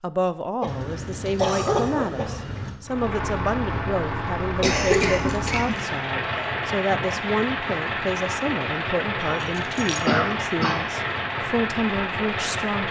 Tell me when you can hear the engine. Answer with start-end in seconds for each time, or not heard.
2.8-12.8.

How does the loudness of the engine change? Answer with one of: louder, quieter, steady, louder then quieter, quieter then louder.
steady.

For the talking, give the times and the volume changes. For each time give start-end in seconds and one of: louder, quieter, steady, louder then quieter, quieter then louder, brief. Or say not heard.
0.0-12.8 steady.